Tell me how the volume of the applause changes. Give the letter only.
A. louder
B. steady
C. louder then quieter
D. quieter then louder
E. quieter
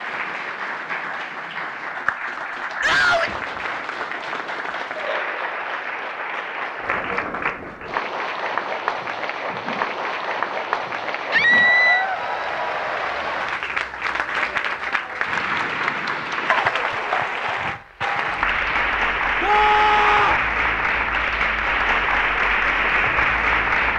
A.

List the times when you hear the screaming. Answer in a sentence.
You can hear the screaming from 2.8 to 3.4 s, from 11.3 to 12.1 s and from 19.4 to 20.4 s.